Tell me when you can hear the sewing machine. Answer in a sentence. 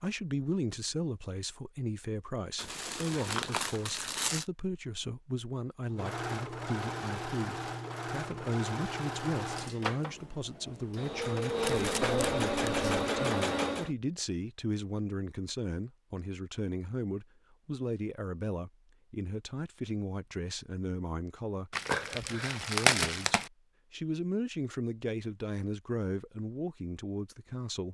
The sewing machine can be heard from 5.8 to 13.9 s.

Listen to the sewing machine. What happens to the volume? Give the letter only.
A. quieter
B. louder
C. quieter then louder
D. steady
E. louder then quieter
B.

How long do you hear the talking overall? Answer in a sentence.
The talking can be heard for 28 seconds in total.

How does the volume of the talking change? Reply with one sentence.
The volume of the talking stays about the same.